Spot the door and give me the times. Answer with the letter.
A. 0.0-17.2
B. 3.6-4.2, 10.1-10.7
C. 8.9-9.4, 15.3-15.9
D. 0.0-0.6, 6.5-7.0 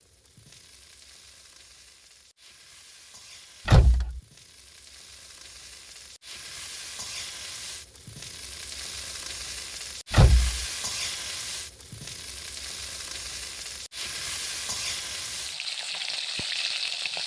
B.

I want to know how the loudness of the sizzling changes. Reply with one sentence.
The volume of the sizzling goes up.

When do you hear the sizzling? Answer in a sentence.
You can hear the sizzling from 0.0 to 17.2 s.